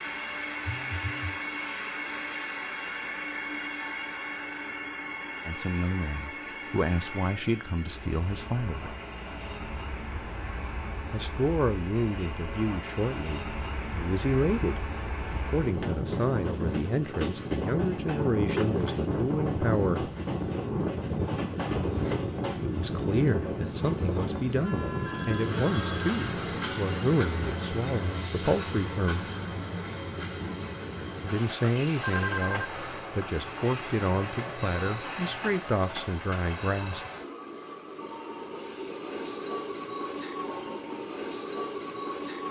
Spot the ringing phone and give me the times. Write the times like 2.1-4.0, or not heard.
0.7-1.4, 24.5-26.3, 32.0-32.7.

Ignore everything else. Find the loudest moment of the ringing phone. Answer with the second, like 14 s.
32 s.